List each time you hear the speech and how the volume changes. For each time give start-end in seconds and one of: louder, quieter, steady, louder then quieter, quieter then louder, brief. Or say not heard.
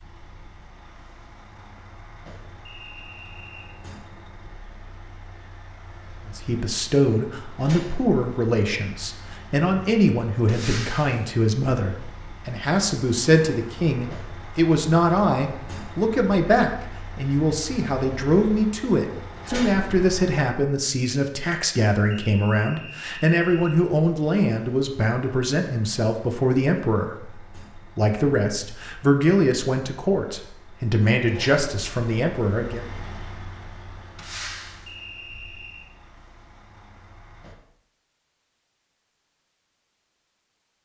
6.2-32.9 steady.